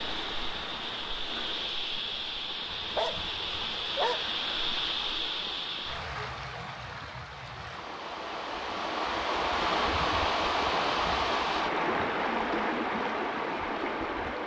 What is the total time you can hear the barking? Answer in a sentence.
The barking can be heard for 2 seconds in total.